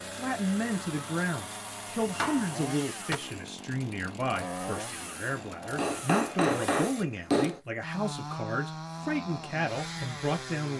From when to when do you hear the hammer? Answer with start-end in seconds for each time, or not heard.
2.0-3.1, 5.8-7.6.